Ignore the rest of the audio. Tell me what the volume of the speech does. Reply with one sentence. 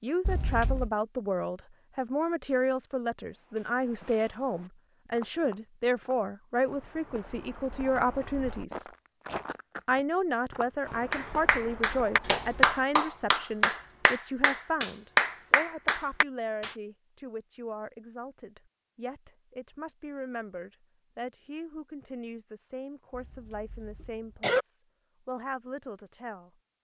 The volume of the speech goes down.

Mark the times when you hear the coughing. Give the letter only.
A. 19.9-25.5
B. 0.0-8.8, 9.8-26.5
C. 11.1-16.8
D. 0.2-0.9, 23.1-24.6
D.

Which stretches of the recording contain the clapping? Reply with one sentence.
You can hear the clapping from 11.1 to 16.8 s.